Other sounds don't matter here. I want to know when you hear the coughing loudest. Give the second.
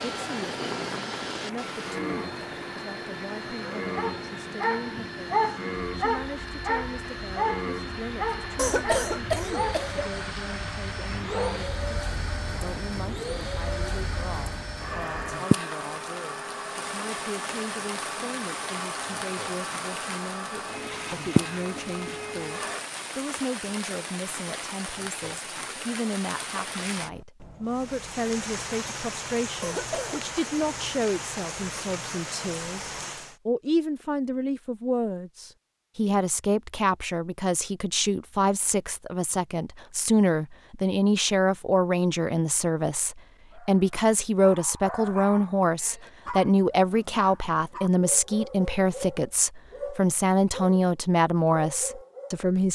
9 s.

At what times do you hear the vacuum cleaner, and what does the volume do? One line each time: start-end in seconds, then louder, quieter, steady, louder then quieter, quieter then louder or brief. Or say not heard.
0.0-22.9 steady.